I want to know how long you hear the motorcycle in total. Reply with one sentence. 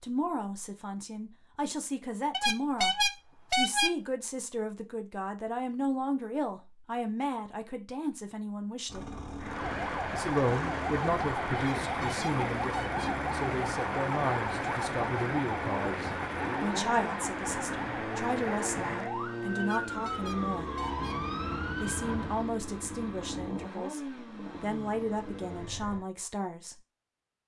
The motorcycle can be heard for 17 seconds in total.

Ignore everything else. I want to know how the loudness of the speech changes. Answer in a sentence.
The loudness of the speech stays about the same.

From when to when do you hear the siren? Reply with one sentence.
You can hear the siren from 9.3 to 22.5 s.